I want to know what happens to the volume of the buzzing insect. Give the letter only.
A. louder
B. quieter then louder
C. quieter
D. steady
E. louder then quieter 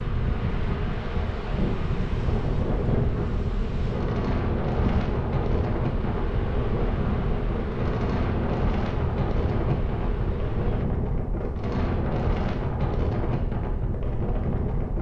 D.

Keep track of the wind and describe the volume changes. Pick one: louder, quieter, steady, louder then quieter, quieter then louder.
steady.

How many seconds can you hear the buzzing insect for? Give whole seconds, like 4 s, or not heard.
11 s.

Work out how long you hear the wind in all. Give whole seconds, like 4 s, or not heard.
15 s.